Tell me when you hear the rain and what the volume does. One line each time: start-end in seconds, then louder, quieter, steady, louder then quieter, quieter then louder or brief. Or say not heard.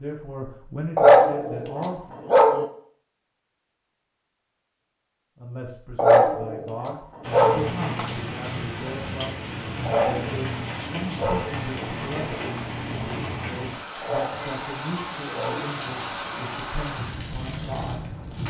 7.2-18.4 steady.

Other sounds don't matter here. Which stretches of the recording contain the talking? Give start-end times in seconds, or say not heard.
0.0-2.1, 5.3-18.4.